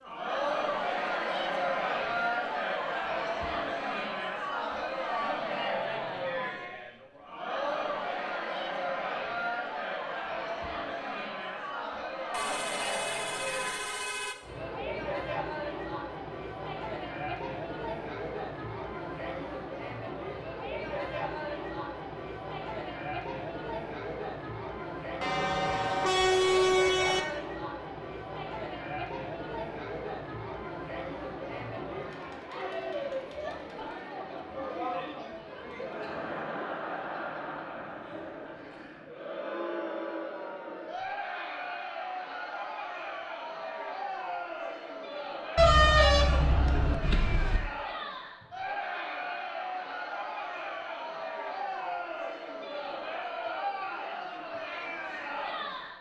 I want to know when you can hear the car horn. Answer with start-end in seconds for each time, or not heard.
12.3-14.3, 25.2-27.2, 45.5-47.6.